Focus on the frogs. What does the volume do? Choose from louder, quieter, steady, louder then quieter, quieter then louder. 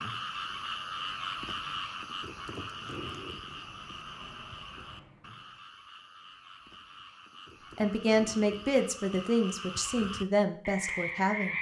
quieter then louder.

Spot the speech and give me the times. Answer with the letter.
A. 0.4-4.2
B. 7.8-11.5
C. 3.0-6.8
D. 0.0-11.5
B.